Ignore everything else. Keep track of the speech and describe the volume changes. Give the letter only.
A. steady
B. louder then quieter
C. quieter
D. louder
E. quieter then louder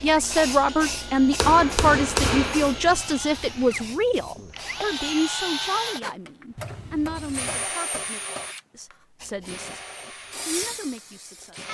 C.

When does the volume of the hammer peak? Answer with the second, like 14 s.
2 s.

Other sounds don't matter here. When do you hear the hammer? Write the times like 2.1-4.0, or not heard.
1.4-2.8, 6.5-8.5.